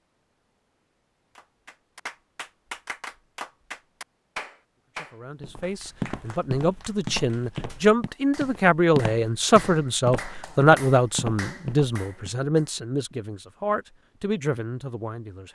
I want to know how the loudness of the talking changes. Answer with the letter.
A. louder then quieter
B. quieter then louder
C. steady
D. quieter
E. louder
A.